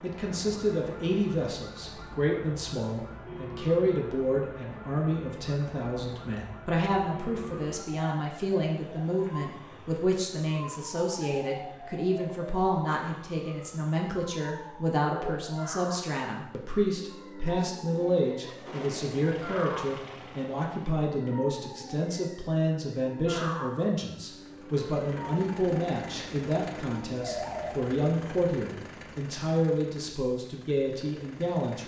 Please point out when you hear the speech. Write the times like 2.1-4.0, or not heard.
0.0-31.8.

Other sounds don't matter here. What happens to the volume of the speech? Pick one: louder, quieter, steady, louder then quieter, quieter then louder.
steady.